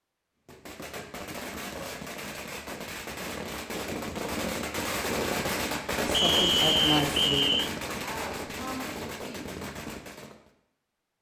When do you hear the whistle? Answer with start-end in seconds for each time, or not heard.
6.1-7.7.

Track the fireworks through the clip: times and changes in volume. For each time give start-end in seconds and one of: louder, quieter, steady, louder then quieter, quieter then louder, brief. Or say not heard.
0.5-10.5 louder then quieter.